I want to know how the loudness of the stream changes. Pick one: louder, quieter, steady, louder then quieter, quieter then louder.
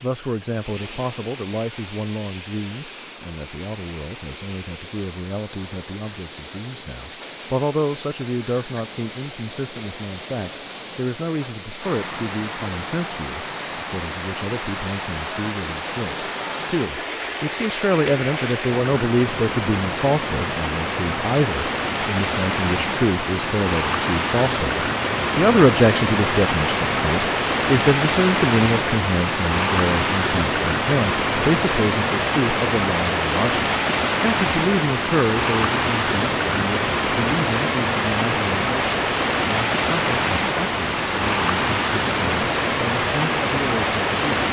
louder.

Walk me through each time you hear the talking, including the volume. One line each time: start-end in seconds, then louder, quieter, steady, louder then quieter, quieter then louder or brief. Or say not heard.
0.0-44.2 louder then quieter.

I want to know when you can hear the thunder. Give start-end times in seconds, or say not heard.
not heard.